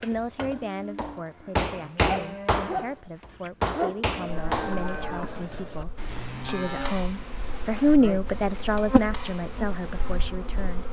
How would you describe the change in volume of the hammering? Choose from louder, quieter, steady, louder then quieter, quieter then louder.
quieter.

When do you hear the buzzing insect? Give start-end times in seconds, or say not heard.
4.2-10.8.